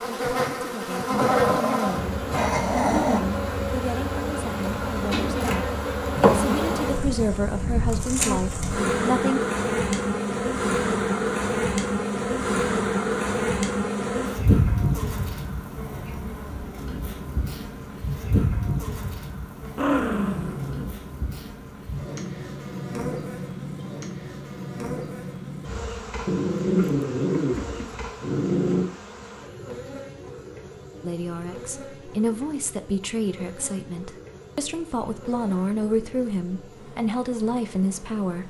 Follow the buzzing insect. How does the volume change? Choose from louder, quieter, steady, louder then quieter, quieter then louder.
quieter.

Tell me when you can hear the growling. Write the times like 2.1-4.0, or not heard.
1.4-3.2, 19.8-20.9, 26.2-28.9.